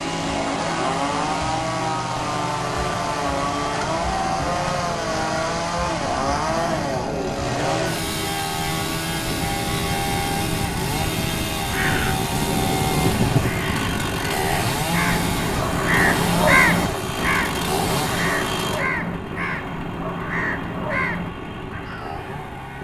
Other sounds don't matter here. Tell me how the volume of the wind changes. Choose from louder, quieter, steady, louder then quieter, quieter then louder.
louder then quieter.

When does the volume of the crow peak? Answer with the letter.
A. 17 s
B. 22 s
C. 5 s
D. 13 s
A.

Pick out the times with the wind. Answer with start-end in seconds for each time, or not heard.
0.1-22.8.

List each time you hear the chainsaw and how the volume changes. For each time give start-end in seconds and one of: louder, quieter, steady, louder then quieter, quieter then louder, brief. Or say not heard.
0.0-22.8 quieter.